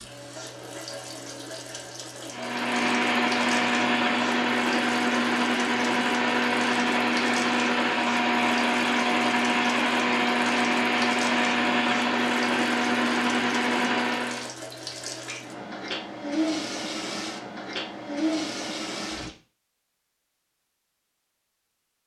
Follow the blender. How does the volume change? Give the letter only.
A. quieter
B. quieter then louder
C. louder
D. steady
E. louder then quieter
D.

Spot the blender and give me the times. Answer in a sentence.
The blender can be heard from 2.3 to 14.6 s.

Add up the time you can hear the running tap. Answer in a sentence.
The running tap can be heard for 19 seconds in total.